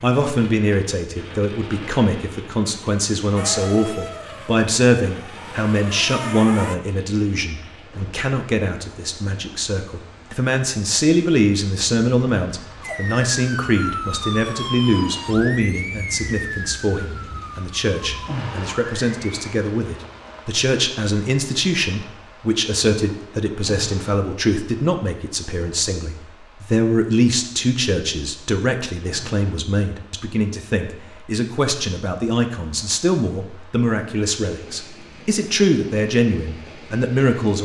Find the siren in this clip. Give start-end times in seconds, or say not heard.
3.4-6.8, 12.8-19.6.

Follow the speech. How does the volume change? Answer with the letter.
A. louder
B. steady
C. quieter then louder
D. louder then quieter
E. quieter
B.